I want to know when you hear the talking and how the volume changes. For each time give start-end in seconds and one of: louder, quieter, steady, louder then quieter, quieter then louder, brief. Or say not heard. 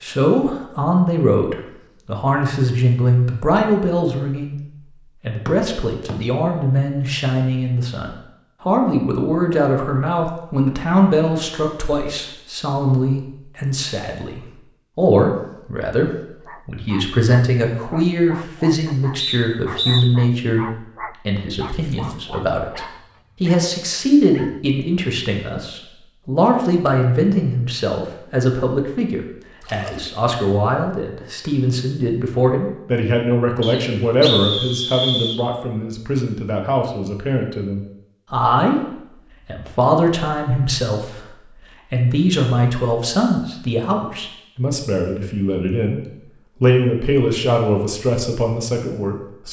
0.0-49.4 steady.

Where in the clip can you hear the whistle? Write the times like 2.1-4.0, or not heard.
5.5-6.2, 19.1-20.1, 33.6-35.4.